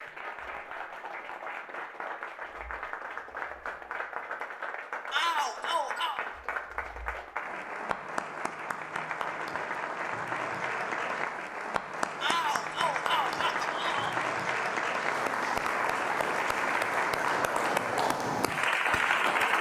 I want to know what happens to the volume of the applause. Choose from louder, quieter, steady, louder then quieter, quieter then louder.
louder.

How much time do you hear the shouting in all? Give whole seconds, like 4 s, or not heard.
3 s.